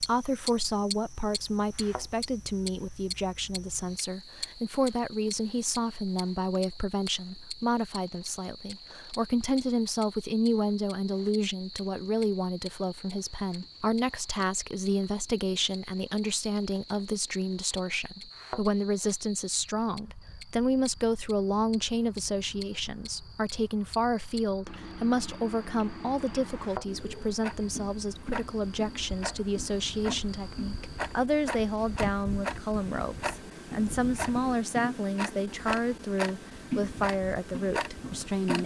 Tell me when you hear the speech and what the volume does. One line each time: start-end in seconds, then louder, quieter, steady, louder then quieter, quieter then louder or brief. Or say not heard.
0.0-38.6 steady.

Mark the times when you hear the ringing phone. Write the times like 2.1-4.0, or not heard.
not heard.